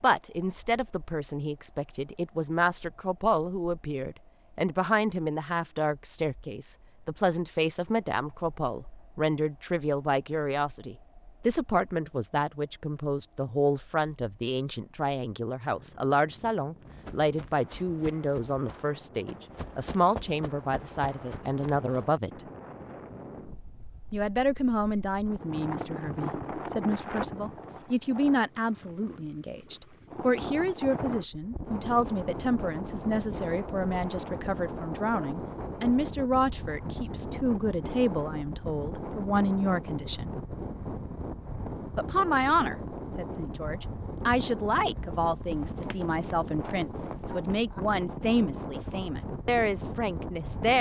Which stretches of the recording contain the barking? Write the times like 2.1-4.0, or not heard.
not heard.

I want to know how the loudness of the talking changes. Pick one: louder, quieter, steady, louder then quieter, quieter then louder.
steady.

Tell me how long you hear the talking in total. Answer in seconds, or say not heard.
47 s.